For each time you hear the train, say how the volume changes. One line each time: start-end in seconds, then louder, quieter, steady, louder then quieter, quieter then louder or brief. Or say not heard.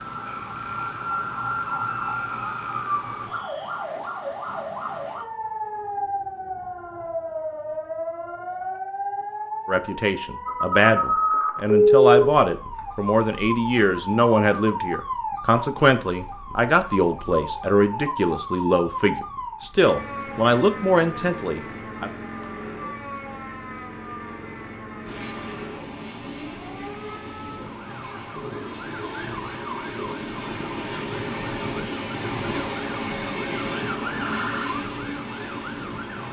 25.1-36.2 louder.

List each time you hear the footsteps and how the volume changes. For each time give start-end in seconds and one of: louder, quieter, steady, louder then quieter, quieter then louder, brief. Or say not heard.
not heard.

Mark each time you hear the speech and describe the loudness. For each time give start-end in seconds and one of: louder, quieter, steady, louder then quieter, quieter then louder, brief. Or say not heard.
9.7-22.1 steady.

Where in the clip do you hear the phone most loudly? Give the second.
12 s.